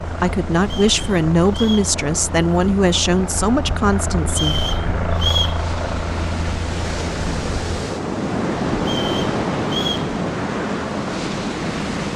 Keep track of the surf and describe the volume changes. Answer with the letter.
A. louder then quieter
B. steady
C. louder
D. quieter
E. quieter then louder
C.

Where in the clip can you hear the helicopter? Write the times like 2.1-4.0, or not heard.
0.0-12.1.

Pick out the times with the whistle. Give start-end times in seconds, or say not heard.
0.6-1.9, 4.3-5.6, 8.8-10.1.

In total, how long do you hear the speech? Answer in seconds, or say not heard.
5 s.